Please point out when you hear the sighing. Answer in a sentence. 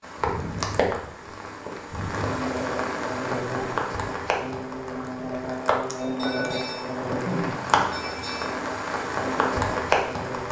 You can hear the sighing from 0.2 to 2.4 s and from 6.0 to 8.5 s.